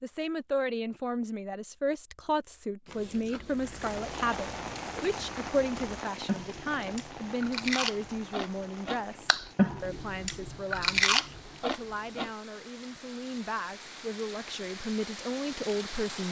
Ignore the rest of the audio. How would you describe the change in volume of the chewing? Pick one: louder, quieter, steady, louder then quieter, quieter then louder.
louder.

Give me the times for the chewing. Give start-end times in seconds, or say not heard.
2.9-12.3.